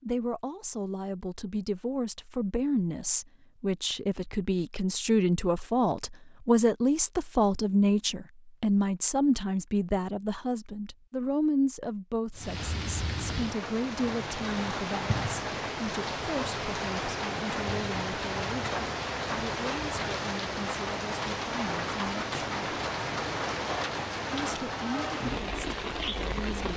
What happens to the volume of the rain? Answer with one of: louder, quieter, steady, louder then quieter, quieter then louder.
steady.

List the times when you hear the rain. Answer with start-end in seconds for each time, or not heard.
12.3-26.7.